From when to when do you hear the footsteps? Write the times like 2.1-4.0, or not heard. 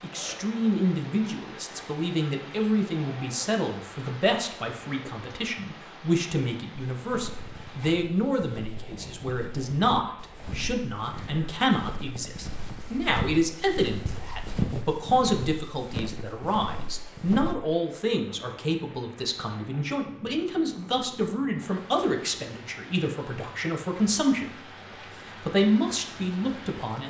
7.0-17.6.